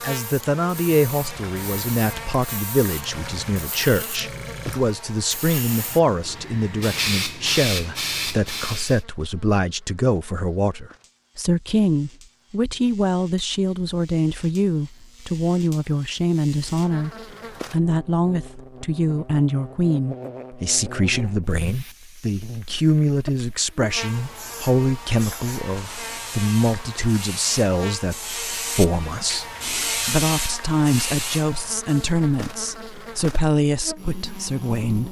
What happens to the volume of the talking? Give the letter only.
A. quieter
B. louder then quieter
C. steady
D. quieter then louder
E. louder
C.